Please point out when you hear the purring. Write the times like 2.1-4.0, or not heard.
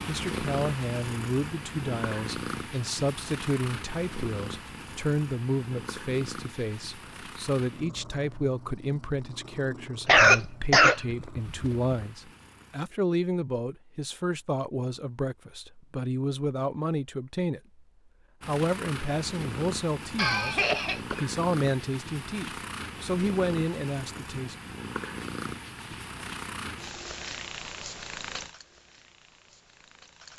0.0-12.8, 18.4-30.3.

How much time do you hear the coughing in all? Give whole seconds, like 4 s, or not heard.
3 s.